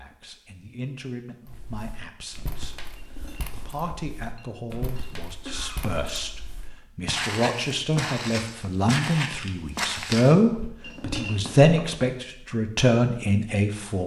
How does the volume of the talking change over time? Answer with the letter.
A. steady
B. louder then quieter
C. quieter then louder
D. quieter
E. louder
E.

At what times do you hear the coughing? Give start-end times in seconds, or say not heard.
5.5-6.2.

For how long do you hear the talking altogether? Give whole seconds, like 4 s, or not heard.
14 s.